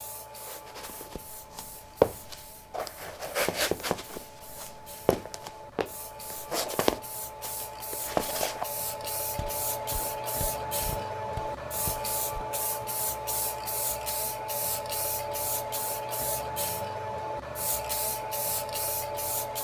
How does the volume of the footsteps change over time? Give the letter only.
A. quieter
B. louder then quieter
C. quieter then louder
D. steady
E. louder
A.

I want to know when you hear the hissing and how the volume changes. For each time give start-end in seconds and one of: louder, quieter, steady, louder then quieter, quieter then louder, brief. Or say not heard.
0.0-19.5 louder.